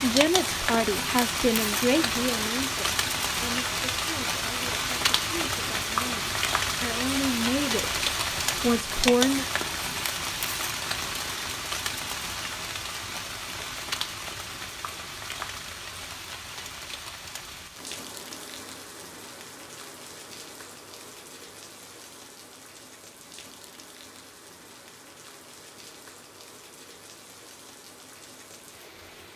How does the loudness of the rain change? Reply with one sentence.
The loudness of the rain goes down.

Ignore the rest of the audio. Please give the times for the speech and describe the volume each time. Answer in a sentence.
The speech can be heard from 0.0 to 9.4 s, getting quieter then louder.